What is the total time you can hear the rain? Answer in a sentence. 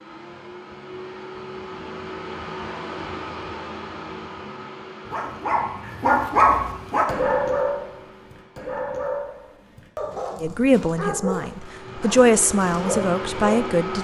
You can't hear the rain here.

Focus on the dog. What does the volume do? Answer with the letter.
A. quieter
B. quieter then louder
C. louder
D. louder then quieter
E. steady
A.